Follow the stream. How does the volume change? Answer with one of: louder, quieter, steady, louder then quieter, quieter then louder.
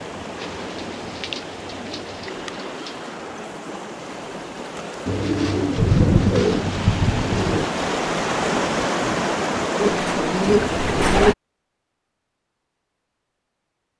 louder.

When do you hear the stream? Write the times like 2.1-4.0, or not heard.
0.0-11.3.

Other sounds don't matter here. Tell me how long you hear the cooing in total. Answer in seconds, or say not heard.
7 s.